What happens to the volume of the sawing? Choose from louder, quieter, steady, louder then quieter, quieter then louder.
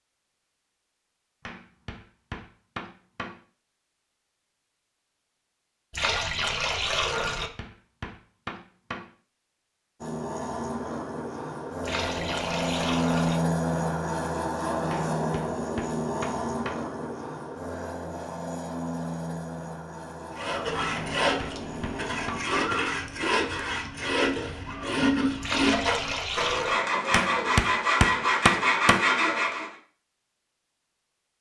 louder.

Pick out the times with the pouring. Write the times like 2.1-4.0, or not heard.
5.9-7.5, 11.8-13.4, 25.4-26.8.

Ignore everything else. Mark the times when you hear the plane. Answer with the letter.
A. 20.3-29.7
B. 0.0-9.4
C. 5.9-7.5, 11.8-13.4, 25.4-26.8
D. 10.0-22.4
D.